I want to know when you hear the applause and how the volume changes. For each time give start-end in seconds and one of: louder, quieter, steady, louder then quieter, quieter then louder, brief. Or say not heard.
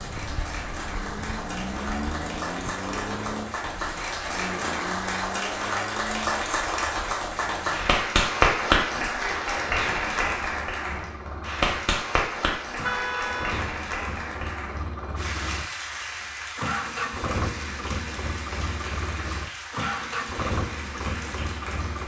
0.0-22.0 louder then quieter.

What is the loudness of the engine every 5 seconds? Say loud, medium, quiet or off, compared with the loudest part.
loud, medium, medium, loud, loud.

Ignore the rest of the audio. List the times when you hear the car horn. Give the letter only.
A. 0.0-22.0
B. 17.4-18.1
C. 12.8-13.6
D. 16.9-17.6
C.